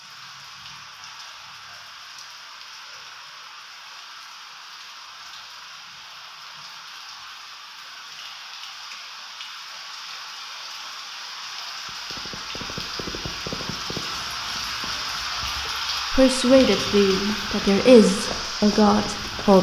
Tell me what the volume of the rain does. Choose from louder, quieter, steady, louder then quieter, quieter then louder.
louder.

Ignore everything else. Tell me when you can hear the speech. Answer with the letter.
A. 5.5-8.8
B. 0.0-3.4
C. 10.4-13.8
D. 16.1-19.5
D.